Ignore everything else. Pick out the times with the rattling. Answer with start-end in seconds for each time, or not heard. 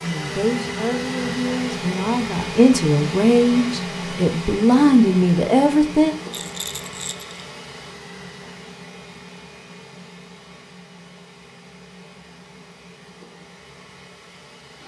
6.3-7.3.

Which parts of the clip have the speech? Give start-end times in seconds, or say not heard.
0.0-6.2.